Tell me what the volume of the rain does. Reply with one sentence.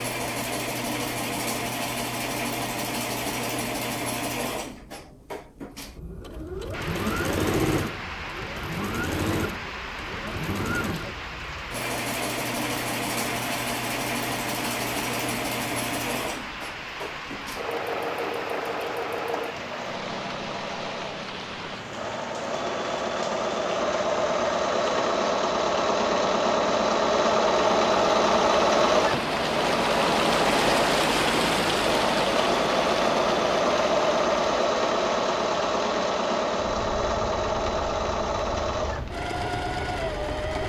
The loudness of the rain goes up, then down.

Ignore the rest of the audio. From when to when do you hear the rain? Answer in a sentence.
You can hear the rain from 6.7 to 40.6 s.